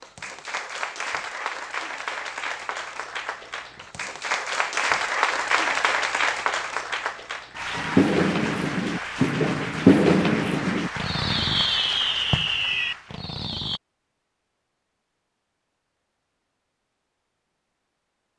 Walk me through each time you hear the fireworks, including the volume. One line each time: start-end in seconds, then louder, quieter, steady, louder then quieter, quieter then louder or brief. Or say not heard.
7.8-13.8 louder then quieter.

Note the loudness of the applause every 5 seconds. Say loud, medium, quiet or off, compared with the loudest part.
loud, loud, medium, off.